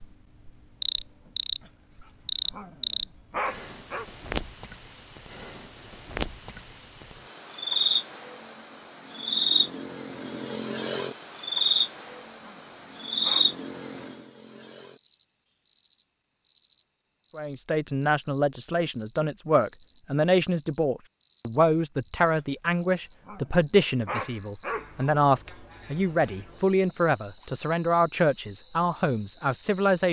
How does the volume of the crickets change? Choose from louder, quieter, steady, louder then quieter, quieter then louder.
quieter.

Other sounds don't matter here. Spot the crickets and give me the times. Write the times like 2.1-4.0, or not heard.
0.0-30.0.